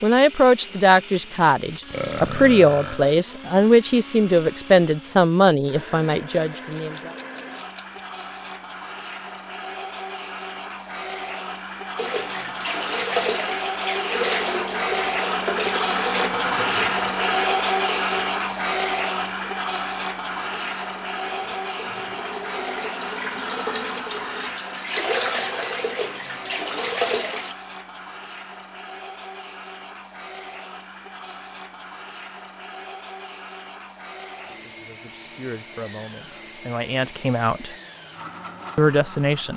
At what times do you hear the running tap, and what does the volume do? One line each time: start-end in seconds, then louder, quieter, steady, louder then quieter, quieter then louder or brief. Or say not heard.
11.9-27.6 quieter then louder.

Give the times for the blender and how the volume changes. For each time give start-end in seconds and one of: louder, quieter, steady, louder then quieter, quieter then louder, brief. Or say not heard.
0.0-39.5 louder then quieter.